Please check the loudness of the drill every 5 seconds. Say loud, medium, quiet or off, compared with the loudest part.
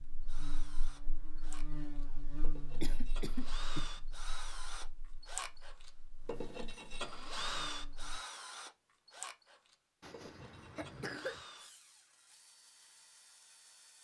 medium, loud, quiet.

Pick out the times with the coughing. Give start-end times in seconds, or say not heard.
2.8-3.9, 10.0-11.4.